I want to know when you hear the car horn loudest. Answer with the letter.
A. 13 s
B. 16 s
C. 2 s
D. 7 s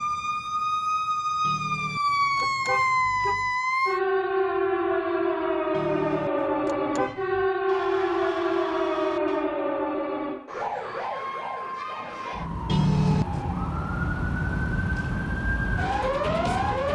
A.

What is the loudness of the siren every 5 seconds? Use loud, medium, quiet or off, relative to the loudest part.
loud, loud, medium, loud.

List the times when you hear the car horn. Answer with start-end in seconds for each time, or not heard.
1.4-3.5, 5.7-7.5, 12.7-13.6.